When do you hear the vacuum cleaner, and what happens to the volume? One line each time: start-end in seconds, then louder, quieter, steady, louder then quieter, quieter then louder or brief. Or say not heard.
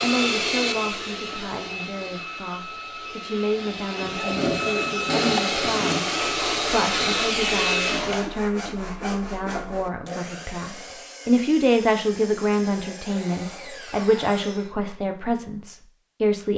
0.0-8.3 quieter then louder.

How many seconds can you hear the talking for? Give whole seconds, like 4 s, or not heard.
16 s.